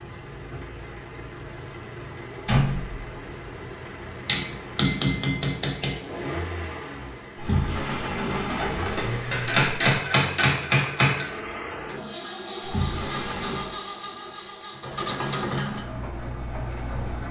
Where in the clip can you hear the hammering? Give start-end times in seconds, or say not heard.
4.2-6.0, 9.3-11.2.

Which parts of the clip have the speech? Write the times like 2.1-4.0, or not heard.
not heard.